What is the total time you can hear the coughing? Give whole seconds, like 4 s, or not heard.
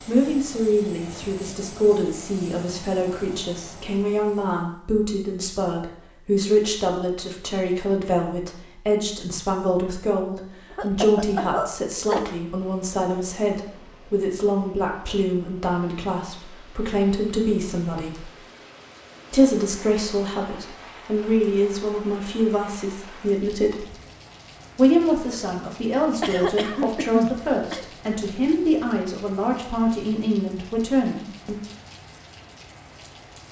3 s.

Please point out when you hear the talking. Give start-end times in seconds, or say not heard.
0.1-18.3, 19.3-23.9, 24.8-31.6.